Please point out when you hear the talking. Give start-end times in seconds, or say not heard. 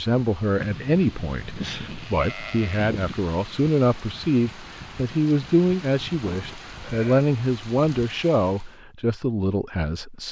0.0-10.2.